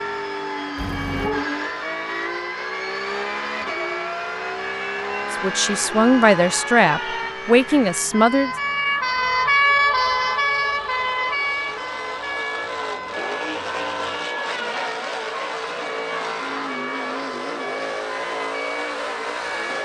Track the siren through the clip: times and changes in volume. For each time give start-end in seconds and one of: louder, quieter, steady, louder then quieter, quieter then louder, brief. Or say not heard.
0.0-19.8 louder then quieter.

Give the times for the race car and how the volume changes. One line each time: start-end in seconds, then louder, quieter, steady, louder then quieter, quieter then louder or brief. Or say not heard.
0.0-19.8 quieter then louder.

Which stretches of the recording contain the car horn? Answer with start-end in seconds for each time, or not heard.
0.8-1.5.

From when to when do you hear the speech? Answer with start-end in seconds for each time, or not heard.
5.3-8.5.